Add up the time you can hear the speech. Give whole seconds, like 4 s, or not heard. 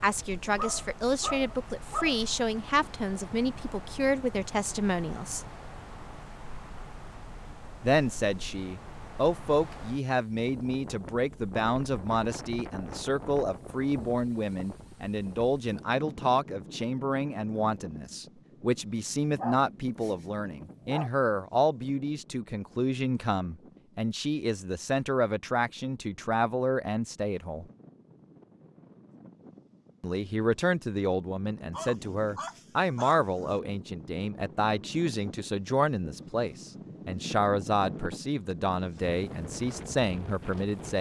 36 s.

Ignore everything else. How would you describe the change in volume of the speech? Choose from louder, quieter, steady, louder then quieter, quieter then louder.
steady.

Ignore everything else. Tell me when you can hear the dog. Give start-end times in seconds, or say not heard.
0.6-2.9, 19.2-21.1, 31.7-33.6.